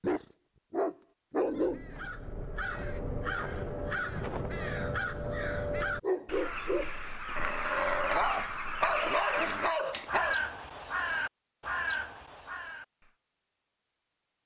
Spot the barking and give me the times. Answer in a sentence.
The barking can be heard from 0.0 to 1.9 s and from 6.0 to 10.3 s.